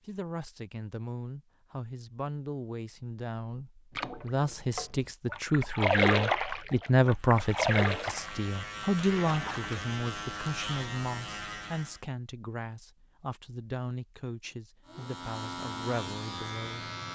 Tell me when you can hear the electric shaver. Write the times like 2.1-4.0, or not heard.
7.0-12.0, 14.8-17.1.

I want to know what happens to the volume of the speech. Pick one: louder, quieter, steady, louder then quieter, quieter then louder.
louder then quieter.